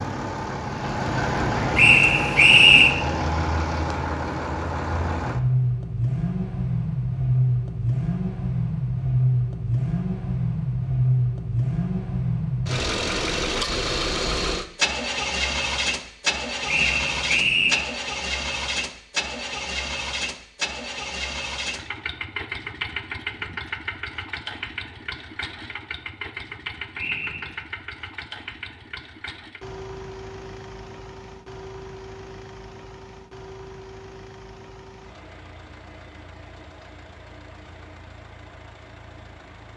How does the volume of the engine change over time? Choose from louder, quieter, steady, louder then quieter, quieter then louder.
quieter.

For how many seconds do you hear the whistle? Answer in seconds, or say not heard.
3 s.